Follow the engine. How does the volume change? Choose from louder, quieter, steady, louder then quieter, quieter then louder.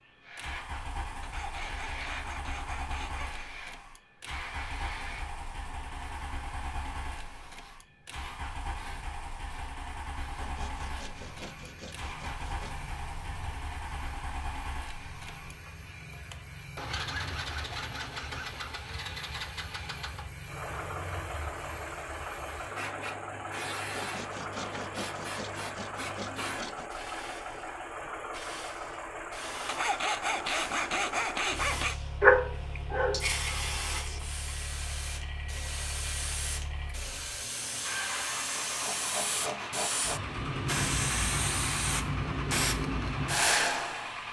steady.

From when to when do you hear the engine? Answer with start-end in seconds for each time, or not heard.
0.0-44.2.